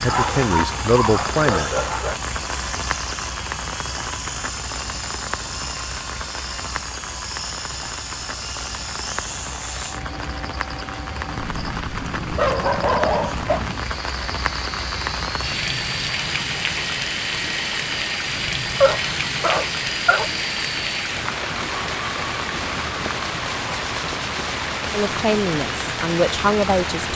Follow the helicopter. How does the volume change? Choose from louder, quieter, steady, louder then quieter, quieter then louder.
steady.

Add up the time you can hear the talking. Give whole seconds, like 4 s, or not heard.
4 s.